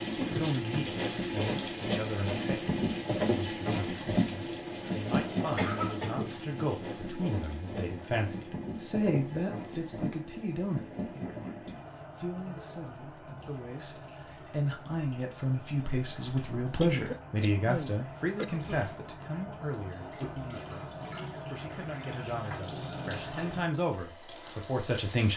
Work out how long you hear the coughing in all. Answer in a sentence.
You can hear the coughing for 3 seconds altogether.